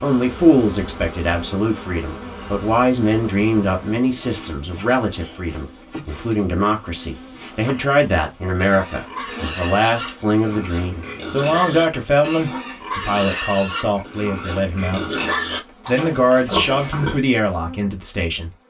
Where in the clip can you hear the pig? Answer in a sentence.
You can hear the pig from 8.6 to 17.2 s.